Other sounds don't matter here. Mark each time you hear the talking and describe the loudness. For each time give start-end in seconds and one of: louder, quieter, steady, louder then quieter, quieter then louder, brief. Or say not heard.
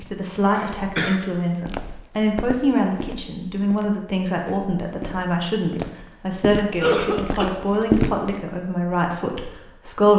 0.0-10.1 steady.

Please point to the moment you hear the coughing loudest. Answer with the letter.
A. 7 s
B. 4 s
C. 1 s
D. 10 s
A.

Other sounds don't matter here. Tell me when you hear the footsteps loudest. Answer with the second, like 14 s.
8 s.